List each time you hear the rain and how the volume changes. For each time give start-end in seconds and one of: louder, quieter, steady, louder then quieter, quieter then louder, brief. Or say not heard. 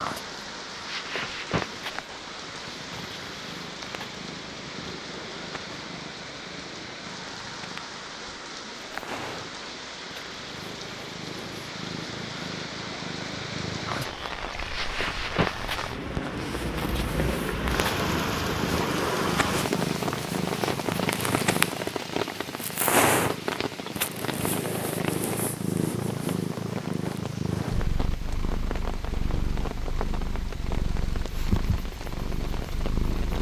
0.0-33.3 louder then quieter.